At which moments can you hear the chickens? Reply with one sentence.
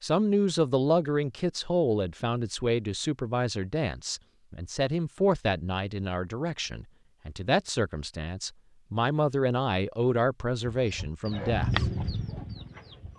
The chickens can be heard from 10.8 to 13.1 s.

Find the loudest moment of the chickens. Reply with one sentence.
The loudest moment of the chickens is at 12 seconds.